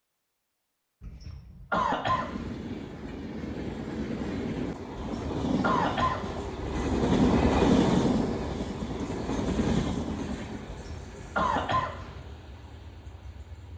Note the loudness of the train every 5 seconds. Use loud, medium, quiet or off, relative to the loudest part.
medium, loud, quiet.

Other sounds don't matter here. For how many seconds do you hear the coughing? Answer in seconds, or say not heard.
5 s.